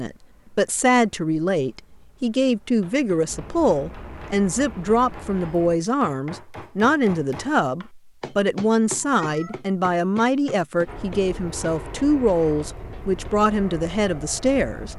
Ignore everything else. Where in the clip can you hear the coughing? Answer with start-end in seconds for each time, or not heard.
not heard.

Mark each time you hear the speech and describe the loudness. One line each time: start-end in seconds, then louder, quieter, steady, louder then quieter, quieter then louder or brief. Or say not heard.
0.0-14.9 steady.